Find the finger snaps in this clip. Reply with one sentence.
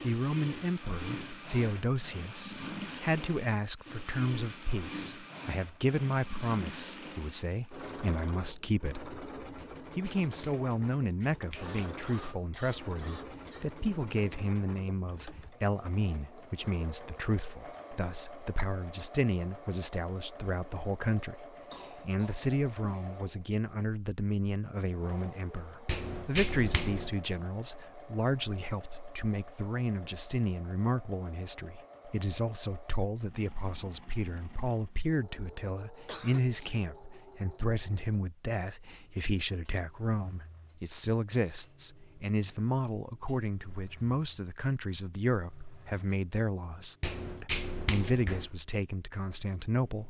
You can hear the finger snaps from 9.6 to 11.9 s, from 25.9 to 27.1 s and from 47.0 to 48.5 s.